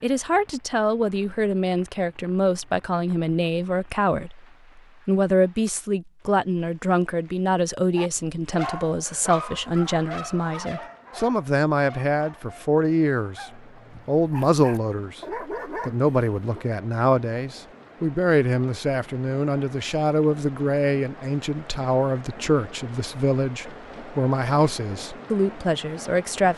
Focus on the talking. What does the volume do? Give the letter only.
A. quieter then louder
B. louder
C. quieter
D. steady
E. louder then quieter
D.